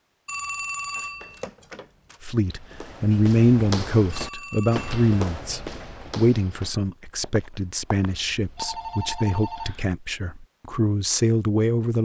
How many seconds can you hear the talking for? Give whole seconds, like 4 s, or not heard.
10 s.